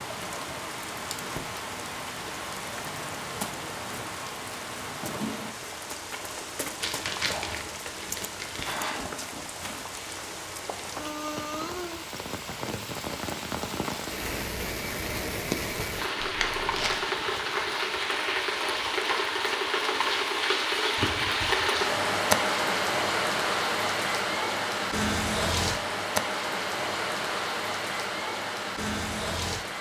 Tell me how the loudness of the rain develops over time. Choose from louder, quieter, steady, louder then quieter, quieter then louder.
louder.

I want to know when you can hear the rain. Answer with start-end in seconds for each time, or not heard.
0.0-29.7.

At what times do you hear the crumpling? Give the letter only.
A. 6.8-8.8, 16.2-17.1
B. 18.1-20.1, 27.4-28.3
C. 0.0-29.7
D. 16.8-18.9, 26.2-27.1
A.